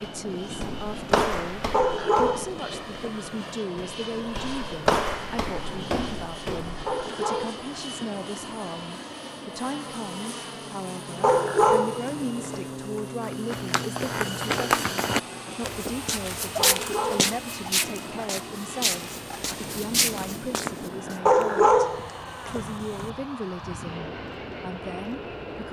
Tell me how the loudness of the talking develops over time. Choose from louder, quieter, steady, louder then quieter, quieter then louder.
steady.